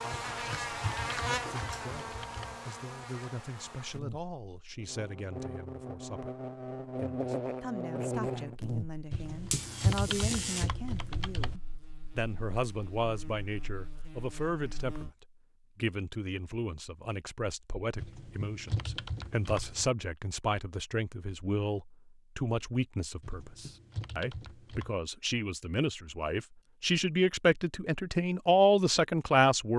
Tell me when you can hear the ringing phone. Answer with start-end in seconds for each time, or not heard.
not heard.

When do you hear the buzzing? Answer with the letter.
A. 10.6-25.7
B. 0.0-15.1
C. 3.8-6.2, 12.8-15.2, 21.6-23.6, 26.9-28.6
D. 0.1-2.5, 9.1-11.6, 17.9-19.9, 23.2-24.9
B.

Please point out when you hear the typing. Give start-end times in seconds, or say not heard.
0.1-2.5, 9.1-11.6, 17.9-19.9, 23.2-24.9.